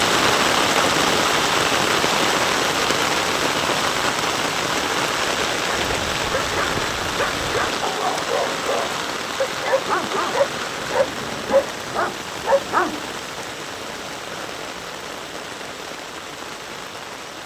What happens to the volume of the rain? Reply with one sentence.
The loudness of the rain goes down.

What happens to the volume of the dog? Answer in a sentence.
The volume of the dog goes up.